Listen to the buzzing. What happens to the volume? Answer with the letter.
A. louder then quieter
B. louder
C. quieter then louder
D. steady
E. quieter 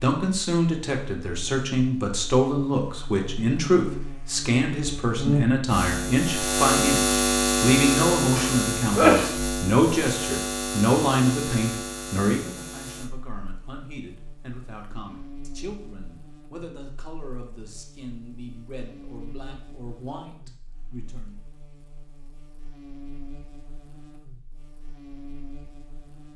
E.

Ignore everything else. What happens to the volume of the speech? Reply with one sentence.
The loudness of the speech goes down.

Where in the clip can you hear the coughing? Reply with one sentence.
You can hear the coughing from 8.3 to 9.3 s.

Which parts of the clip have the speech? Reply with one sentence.
You can hear the speech from 0.0 to 21.4 s.